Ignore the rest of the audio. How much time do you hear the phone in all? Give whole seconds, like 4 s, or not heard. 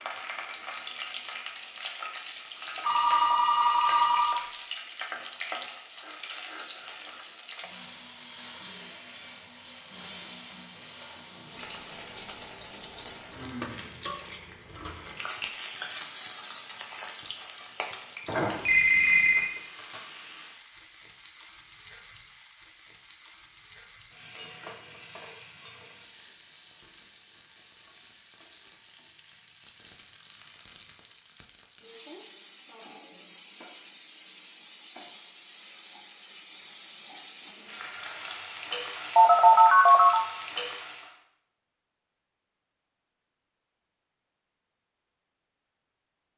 4 s.